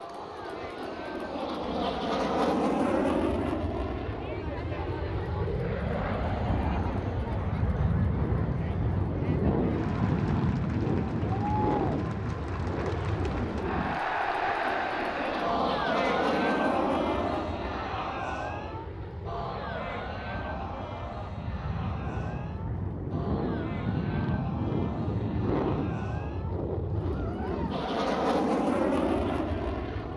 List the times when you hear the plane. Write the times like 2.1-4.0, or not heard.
0.0-30.1.